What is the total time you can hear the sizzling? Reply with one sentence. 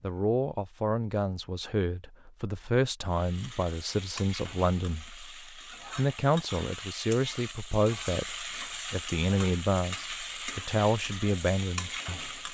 The sizzling can be heard for 9 seconds in total.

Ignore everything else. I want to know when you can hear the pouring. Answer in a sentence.
You can't hear the pouring here.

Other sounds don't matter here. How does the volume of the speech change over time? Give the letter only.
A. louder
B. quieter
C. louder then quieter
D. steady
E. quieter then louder
D.